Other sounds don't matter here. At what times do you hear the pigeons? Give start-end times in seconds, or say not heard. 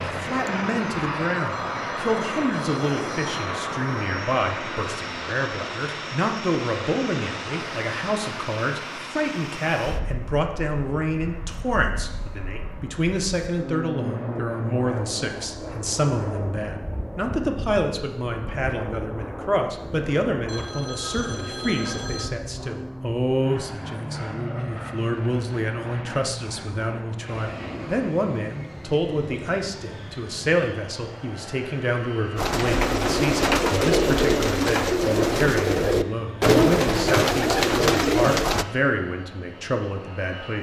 32.4-38.6.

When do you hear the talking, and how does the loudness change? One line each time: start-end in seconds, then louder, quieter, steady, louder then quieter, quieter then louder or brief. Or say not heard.
0.1-40.5 steady.